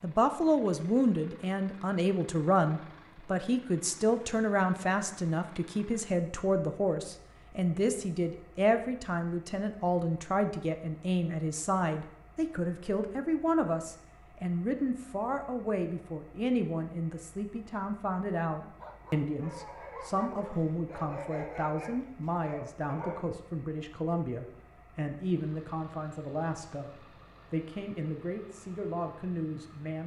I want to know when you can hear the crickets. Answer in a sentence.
The crickets can't be heard in this clip.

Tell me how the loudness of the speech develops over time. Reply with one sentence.
The volume of the speech goes down.